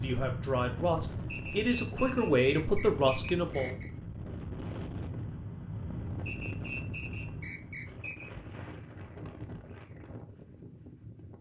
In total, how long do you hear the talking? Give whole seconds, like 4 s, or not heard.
4 s.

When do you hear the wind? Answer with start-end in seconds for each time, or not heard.
0.0-11.3.